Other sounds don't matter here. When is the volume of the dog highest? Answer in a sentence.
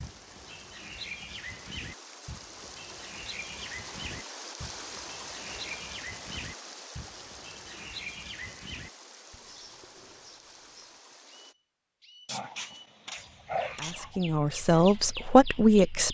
The volume of the dog peaks at 14 seconds.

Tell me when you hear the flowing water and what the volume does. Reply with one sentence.
You can hear the flowing water from 0.0 to 11.6 s, getting louder then quieter.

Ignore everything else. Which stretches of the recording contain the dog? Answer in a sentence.
You can hear the dog from 12.2 to 14.2 s.